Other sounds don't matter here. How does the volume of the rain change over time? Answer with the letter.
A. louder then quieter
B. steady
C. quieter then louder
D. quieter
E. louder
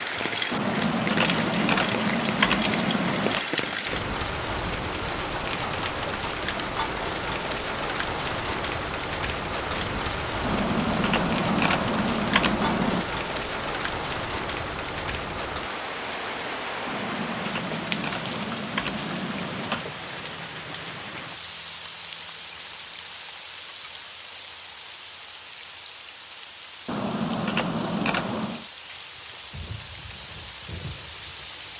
D.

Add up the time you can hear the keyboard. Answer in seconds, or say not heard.
10 s.